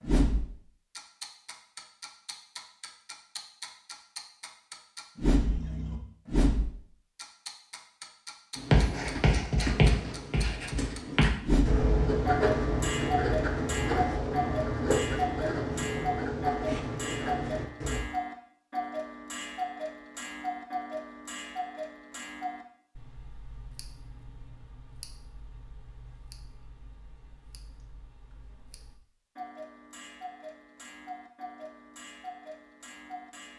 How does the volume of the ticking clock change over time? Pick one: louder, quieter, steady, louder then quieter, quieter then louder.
quieter then louder.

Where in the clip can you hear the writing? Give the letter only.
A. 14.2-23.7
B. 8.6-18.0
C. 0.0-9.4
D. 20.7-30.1
B.